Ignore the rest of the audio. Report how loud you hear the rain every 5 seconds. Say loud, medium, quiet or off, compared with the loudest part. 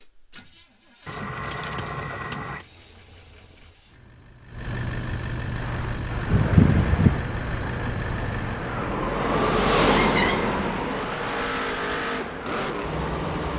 off, loud, loud.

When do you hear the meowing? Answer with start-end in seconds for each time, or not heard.
1.1-2.6, 6.3-7.2, 10.0-10.4.